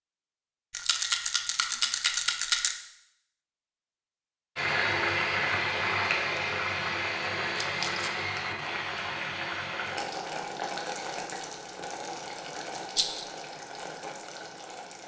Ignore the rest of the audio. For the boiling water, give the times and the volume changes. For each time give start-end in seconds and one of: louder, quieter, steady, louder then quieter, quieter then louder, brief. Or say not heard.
4.5-15.0 quieter.